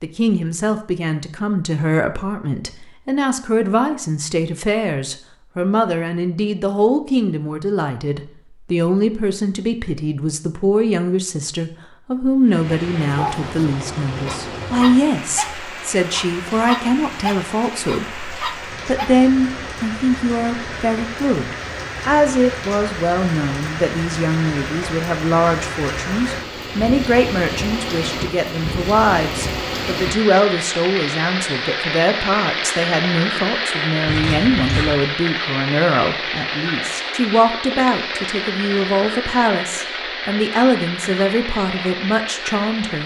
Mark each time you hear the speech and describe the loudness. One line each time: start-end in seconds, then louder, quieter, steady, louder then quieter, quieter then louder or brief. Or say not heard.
0.0-43.0 steady.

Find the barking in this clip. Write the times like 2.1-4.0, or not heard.
13.0-19.1.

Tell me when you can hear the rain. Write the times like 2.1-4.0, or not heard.
12.4-43.0.